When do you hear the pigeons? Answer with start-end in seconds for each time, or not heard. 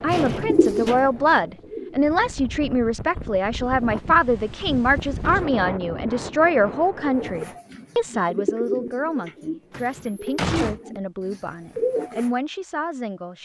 0.2-2.1, 7.0-12.3.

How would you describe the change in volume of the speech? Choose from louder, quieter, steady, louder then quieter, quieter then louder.
quieter.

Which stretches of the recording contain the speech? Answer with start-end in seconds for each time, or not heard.
0.0-13.4.